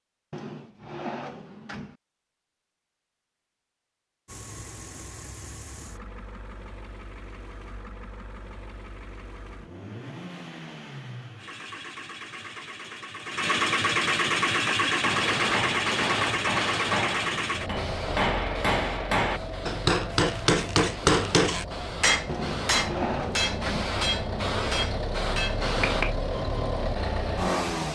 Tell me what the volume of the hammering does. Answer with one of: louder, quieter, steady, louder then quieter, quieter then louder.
louder then quieter.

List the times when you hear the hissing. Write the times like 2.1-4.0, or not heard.
15.1-26.2.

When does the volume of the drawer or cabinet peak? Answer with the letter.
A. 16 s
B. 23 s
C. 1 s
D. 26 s
B.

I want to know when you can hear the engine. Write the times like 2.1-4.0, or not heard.
4.2-27.9.